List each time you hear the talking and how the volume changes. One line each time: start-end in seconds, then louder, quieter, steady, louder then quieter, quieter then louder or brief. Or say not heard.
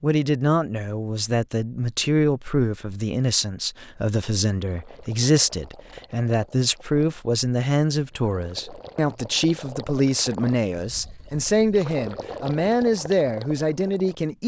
0.0-14.4 steady.